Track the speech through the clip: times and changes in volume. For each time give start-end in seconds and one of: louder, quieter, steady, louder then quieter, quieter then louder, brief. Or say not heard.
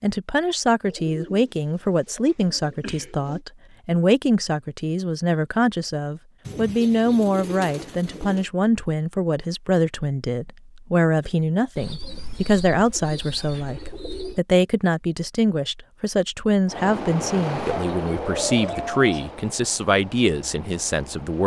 0.0-21.4 steady.